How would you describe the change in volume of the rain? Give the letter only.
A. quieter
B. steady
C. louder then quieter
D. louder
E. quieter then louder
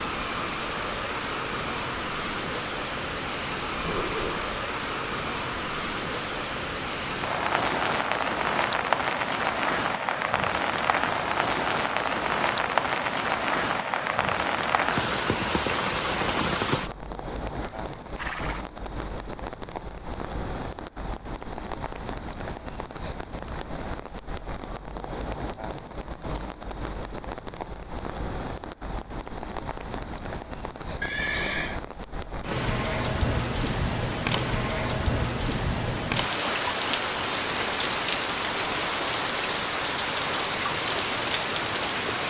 B.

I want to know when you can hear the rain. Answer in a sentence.
The rain can be heard from 0.0 to 42.2 s.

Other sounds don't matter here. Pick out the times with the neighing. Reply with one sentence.
You can hear the neighing from 3.8 to 4.5 s, from 17.6 to 18.6 s and from 31.0 to 31.8 s.